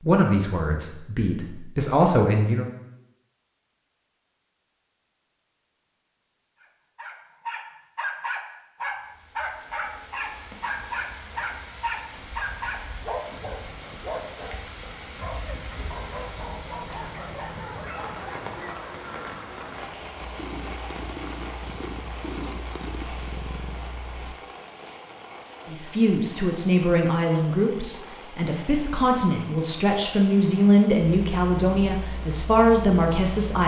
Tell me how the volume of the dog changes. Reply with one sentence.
The loudness of the dog goes down.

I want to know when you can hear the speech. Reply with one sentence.
You can hear the speech from 0.0 to 2.6 s and from 25.6 to 33.6 s.